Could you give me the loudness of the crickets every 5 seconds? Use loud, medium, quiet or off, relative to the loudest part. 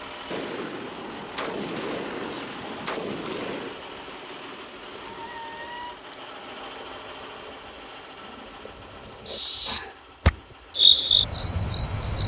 medium, loud, loud.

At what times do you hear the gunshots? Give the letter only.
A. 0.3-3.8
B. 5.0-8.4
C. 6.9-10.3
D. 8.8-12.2
A.